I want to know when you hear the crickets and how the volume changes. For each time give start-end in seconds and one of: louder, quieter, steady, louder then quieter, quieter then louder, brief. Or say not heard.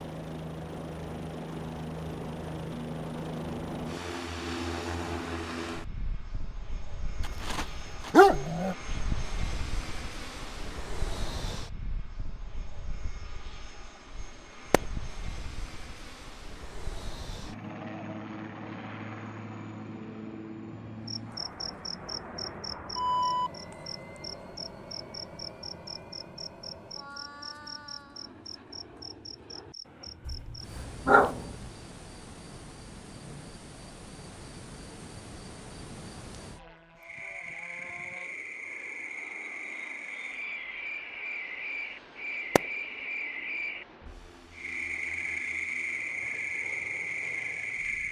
21.1-48.0 quieter then louder.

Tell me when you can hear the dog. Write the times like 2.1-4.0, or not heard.
7.4-8.8, 30.2-31.6.